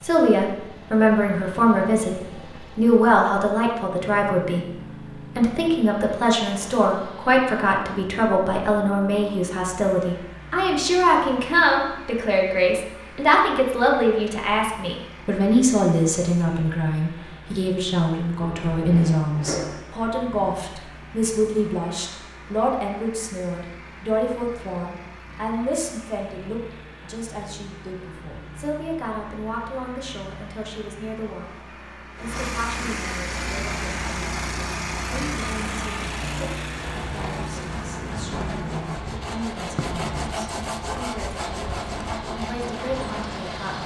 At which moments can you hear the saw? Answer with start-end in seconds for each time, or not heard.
33.2-43.8.